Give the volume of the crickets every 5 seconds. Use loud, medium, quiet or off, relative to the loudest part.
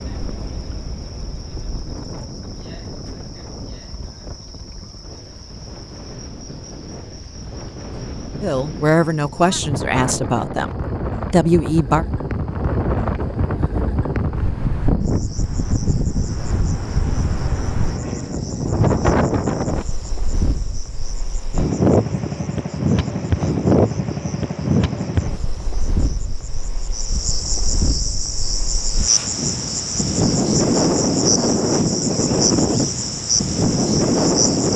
quiet, quiet, quiet, quiet, quiet, loud, loud.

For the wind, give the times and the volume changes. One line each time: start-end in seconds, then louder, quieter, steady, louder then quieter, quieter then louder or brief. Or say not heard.
0.0-34.7 louder.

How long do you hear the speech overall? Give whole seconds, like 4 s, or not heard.
4 s.